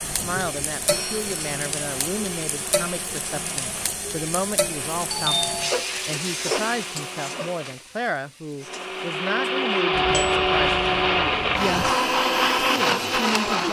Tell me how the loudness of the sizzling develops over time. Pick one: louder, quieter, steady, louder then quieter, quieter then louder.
quieter.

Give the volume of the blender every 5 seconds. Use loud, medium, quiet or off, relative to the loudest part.
quiet, medium, loud.